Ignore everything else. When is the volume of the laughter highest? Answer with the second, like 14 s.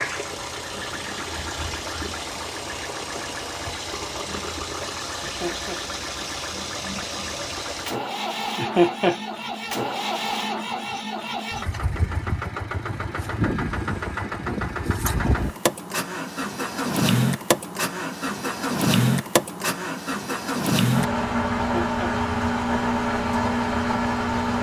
9 s.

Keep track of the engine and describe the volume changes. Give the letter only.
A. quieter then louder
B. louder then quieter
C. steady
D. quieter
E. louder
E.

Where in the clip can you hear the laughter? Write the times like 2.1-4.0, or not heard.
5.2-5.8, 8.6-9.2, 21.6-22.1.